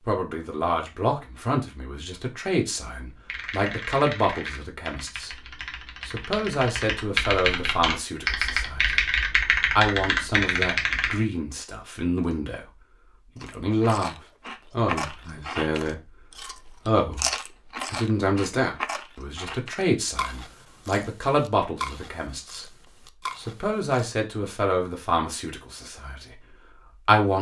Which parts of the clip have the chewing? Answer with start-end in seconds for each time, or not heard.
13.4-23.9.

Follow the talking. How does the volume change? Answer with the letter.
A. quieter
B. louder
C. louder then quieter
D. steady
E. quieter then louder
D.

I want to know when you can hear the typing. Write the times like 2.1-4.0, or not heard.
3.1-11.2.